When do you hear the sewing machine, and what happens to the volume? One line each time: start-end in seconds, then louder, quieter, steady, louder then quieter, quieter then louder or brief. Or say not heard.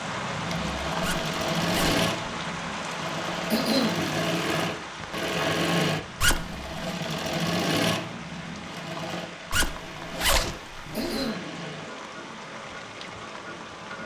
0.0-14.0 quieter.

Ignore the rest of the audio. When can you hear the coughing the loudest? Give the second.
4 s.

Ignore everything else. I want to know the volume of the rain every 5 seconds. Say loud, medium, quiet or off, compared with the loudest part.
loud, medium, medium.